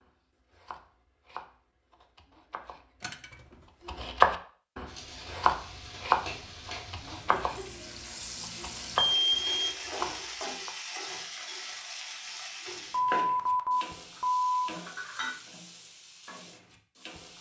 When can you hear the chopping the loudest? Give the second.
4 s.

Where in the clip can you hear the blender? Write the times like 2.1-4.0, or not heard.
not heard.